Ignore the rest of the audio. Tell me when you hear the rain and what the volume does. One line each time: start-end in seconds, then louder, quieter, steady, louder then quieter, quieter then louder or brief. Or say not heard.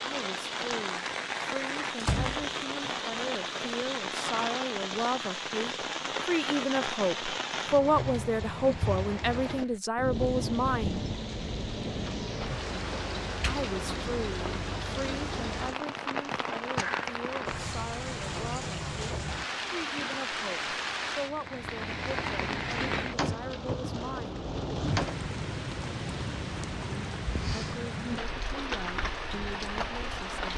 0.0-30.5 steady.